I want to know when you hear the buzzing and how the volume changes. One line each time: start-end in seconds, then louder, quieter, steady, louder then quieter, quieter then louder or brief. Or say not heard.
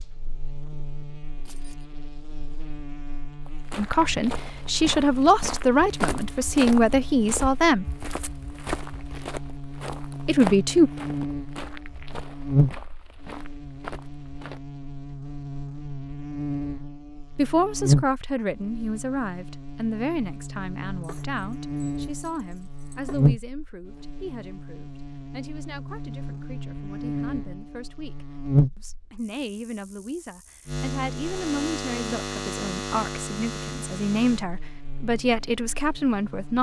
0.0-36.5 louder then quieter.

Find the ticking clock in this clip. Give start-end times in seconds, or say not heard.
not heard.